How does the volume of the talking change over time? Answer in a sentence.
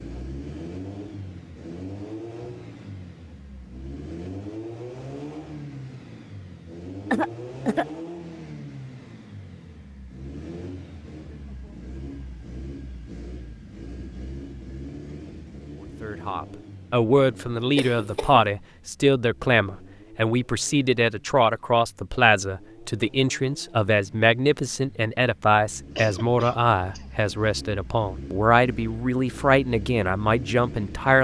The volume of the talking stays about the same.